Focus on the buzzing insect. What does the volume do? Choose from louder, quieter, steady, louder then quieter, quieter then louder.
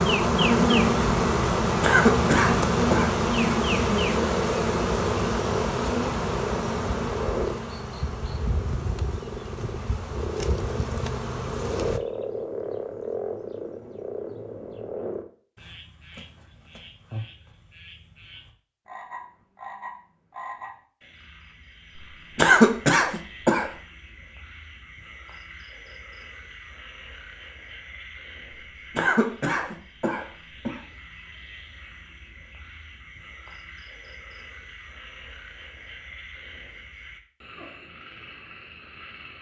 quieter.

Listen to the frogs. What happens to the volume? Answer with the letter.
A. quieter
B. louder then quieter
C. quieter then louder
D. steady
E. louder
A.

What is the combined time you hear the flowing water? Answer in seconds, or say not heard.
not heard.